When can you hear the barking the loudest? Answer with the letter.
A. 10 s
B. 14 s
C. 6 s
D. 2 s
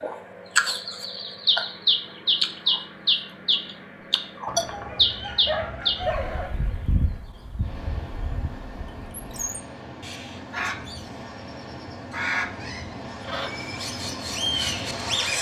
C.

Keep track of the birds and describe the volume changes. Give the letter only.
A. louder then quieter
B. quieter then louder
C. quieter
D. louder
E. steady
B.